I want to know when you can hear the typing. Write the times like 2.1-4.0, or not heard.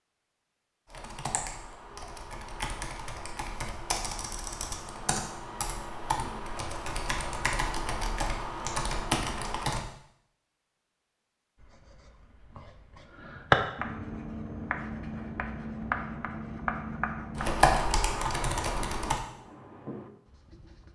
0.8-9.8, 17.4-19.2.